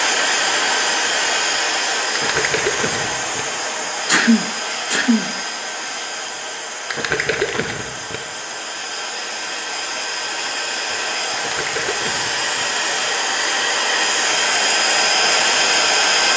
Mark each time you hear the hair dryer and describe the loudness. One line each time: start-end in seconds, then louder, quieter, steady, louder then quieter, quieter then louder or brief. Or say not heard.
0.0-16.3 quieter then louder.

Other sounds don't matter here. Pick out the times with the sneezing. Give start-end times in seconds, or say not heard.
4.0-5.3.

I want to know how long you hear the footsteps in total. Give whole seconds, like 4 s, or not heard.
not heard.